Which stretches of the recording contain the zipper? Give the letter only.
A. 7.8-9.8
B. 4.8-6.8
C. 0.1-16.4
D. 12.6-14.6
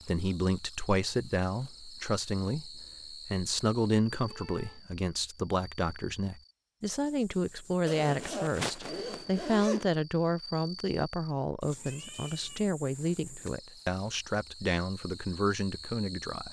A.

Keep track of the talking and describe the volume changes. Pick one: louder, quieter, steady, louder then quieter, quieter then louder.
steady.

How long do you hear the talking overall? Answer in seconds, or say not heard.
16 s.